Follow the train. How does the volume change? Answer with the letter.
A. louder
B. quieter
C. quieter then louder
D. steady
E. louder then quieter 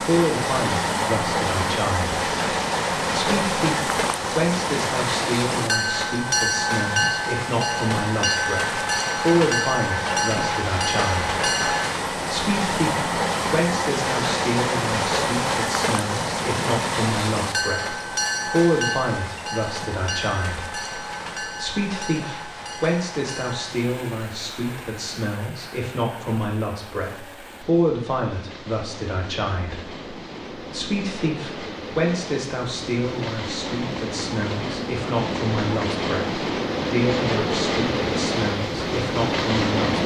C.